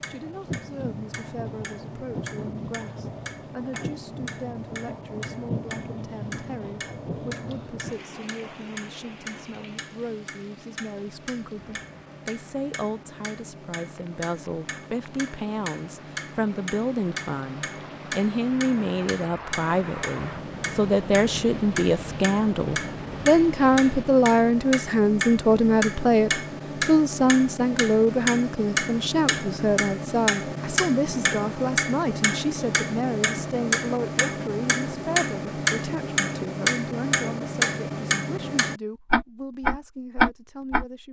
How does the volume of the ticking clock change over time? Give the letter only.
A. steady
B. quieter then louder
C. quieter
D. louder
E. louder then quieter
D.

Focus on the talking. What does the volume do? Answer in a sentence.
The volume of the talking goes up, then down.